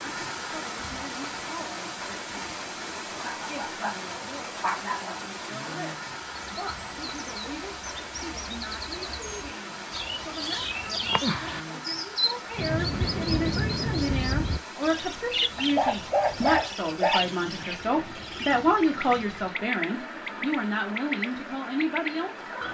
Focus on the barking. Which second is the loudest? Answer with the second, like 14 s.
16 s.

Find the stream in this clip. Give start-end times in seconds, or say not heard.
0.0-22.6.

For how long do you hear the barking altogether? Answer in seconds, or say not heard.
4 s.